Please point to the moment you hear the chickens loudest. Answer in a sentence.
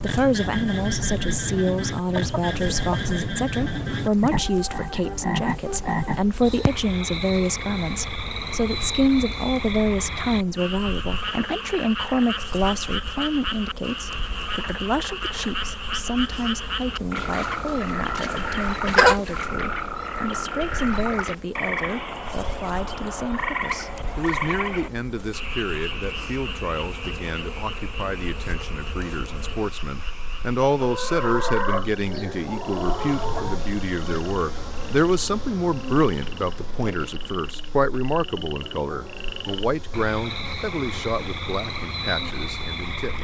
The volume of the chickens peaks at 19 seconds.